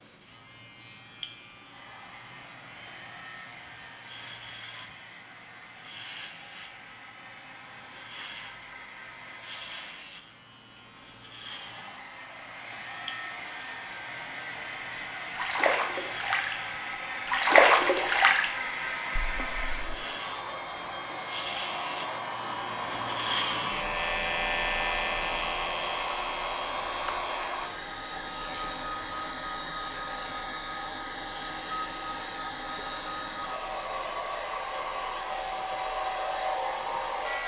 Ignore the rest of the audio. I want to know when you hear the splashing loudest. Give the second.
18 s.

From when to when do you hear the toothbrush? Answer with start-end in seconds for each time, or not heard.
not heard.